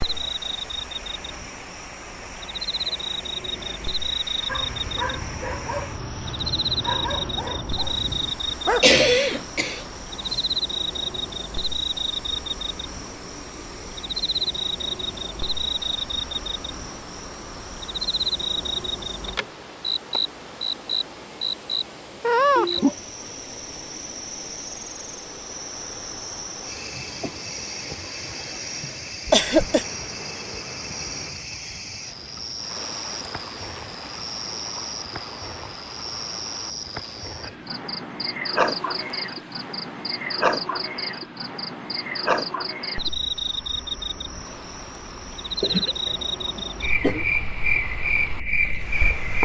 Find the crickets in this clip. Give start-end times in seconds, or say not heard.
0.0-49.3.